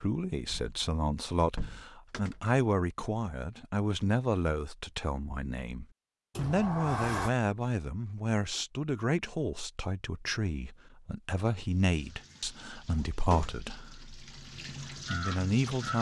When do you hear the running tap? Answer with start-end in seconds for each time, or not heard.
11.8-15.9.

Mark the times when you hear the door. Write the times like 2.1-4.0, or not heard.
0.5-2.5, 6.3-7.3, 12.3-13.7.